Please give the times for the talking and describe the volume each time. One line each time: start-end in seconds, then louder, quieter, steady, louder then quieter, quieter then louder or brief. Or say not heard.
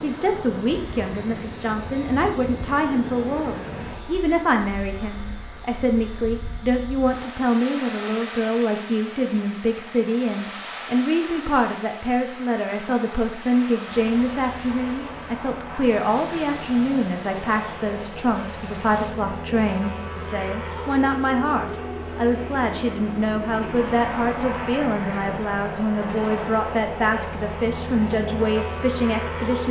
0.0-29.6 steady.